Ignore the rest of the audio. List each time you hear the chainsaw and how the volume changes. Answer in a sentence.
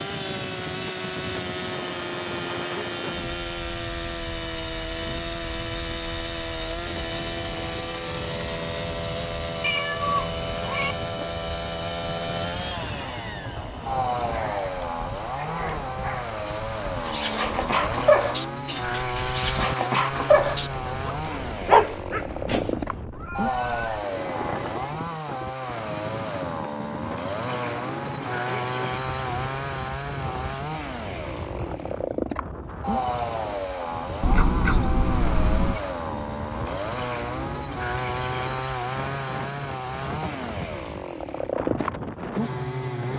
You can hear the chainsaw from 0.0 to 43.1 s, at a steady volume.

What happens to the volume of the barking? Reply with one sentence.
The volume of the barking goes up.